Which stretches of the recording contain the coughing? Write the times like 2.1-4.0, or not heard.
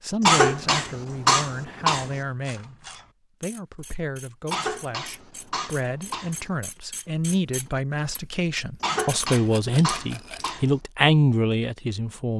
0.2-2.2, 4.5-6.5, 8.8-10.8.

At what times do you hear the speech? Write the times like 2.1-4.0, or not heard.
0.0-12.3.